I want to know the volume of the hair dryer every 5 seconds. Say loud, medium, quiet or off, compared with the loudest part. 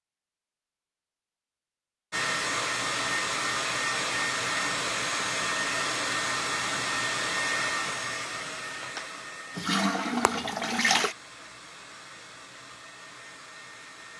loud, loud, quiet.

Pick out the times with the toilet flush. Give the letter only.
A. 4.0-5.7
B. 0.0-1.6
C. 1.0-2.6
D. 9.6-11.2
D.